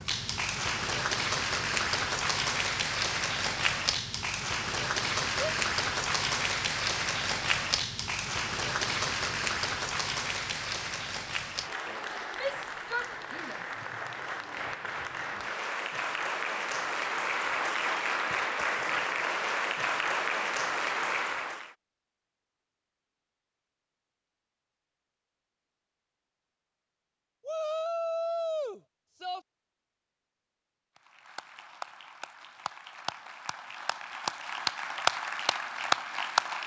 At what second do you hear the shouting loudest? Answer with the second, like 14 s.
28 s.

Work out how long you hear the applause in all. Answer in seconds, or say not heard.
27 s.